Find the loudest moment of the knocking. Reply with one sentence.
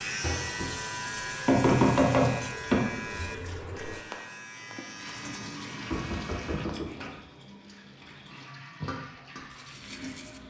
The volume of the knocking peaks at 2 seconds.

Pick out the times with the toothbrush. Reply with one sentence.
You can hear the toothbrush from 4.8 to 10.4 s.